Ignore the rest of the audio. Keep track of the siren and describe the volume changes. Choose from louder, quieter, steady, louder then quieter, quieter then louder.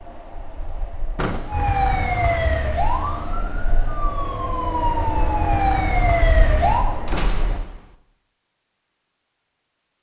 quieter then louder.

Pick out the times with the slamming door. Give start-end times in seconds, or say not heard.
1.1-1.6, 7.0-8.0.